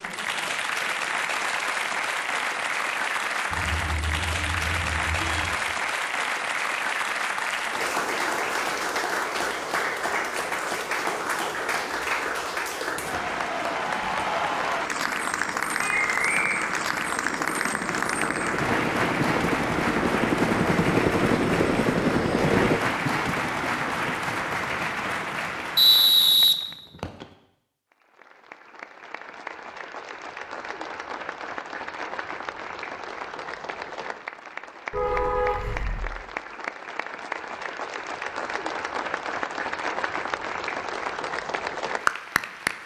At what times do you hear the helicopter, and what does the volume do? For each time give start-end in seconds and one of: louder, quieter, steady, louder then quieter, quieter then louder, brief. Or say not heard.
12.9-22.8 louder.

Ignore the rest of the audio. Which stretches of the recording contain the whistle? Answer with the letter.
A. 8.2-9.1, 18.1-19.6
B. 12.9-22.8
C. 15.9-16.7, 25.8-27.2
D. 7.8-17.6
C.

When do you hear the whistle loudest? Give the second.
26 s.